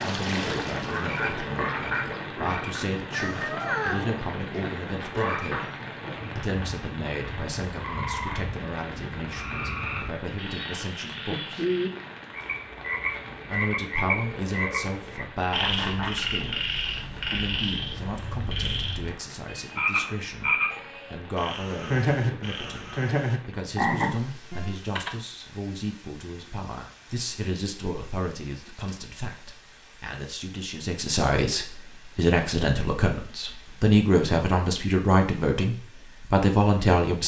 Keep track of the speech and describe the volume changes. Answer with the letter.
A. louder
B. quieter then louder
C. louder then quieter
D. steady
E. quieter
A.